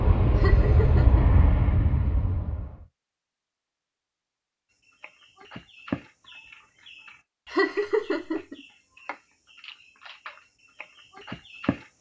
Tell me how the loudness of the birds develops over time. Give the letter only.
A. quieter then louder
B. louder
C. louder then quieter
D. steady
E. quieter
A.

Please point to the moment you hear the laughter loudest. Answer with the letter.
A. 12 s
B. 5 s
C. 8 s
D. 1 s
C.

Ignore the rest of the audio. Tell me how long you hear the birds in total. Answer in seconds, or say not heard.
7 s.